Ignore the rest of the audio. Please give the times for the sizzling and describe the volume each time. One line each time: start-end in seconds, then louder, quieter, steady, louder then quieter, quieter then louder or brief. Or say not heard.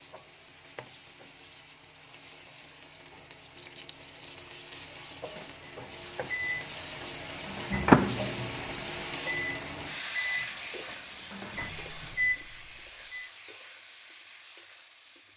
0.0-15.3 louder then quieter.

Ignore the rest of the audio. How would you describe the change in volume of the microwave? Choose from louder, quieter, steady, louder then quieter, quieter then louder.
quieter then louder.